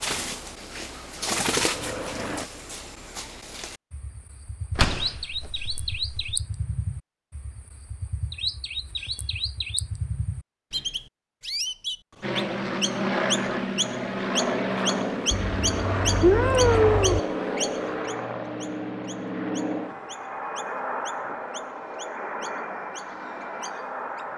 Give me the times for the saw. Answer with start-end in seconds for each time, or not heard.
not heard.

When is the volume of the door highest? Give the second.
5 s.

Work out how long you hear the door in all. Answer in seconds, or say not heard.
2 s.